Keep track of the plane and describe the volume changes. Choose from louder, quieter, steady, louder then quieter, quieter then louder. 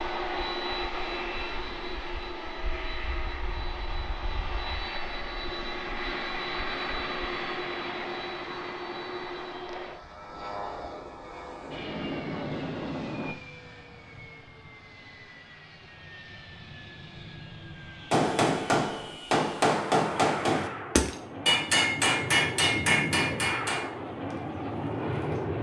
quieter then louder.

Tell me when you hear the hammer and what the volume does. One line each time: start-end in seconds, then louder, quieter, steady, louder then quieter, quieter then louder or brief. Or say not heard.
18.1-25.4 quieter.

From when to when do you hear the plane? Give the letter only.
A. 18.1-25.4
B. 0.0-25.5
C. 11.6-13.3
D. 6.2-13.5
B.